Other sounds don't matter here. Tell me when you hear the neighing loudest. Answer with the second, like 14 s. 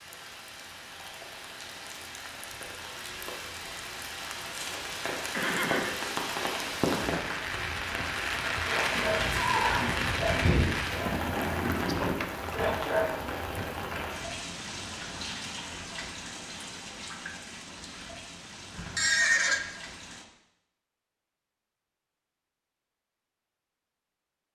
19 s.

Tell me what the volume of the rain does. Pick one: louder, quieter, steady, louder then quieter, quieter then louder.
louder then quieter.